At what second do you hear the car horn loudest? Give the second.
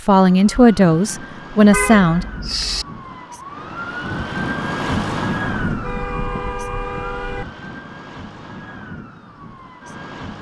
2 s.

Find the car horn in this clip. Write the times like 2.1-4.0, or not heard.
1.7-2.9, 5.7-7.5.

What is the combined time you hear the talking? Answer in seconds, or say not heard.
2 s.